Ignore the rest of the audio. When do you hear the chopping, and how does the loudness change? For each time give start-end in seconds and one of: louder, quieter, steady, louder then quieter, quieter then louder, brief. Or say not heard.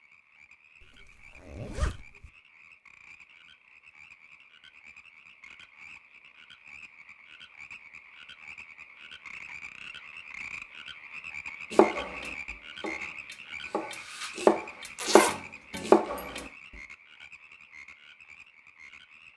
11.7-16.4 louder.